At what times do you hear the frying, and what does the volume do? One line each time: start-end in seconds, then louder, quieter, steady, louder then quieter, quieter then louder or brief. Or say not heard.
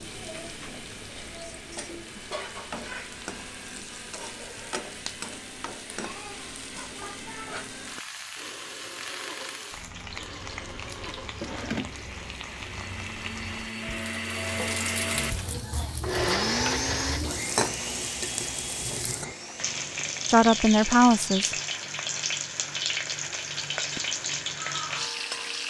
0.0-25.6 louder.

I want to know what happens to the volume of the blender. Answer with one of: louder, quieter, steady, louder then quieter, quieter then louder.
louder then quieter.